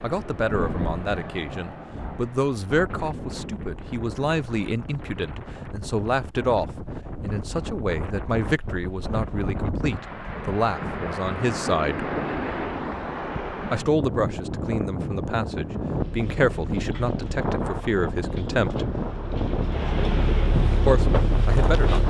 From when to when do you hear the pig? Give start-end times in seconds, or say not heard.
not heard.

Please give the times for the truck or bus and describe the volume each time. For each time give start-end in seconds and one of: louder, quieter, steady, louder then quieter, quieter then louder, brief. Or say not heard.
15.9-22.0 louder.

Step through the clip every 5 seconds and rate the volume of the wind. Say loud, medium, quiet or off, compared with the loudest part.
medium, medium, loud, loud, loud.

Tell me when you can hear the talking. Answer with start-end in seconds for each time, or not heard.
0.0-12.1, 13.7-18.9, 20.9-22.0.